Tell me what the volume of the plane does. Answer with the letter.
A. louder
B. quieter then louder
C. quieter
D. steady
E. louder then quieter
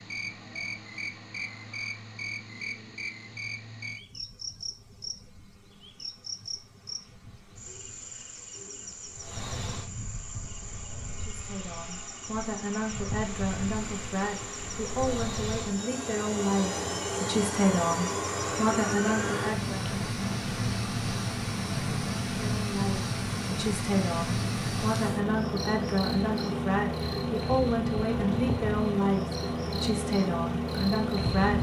A.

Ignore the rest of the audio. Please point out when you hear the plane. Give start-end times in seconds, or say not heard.
0.0-31.5.